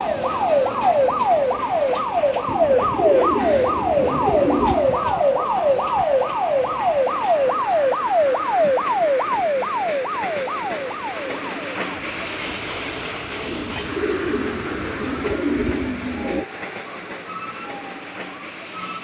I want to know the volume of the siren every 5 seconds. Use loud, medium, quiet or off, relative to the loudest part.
loud, loud, quiet, quiet.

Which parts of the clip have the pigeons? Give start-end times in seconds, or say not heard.
2.5-5.0, 13.4-16.4.